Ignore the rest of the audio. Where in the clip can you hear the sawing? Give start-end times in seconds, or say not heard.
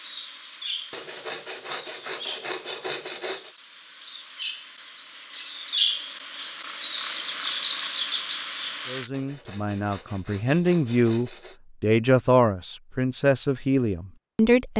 0.9-3.5, 9.1-11.6.